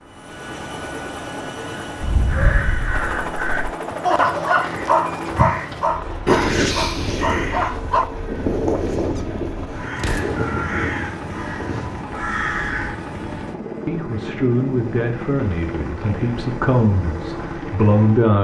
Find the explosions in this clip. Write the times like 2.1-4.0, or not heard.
9.9-10.4.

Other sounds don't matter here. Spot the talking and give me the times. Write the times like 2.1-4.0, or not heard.
13.8-18.3.